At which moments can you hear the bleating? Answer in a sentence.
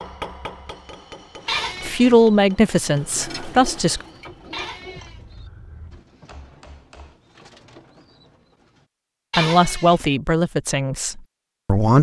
You can hear the bleating from 1.4 to 2.1 s, from 4.5 to 5.2 s and from 9.3 to 10.0 s.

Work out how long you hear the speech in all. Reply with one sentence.
You can hear the speech for 5 seconds altogether.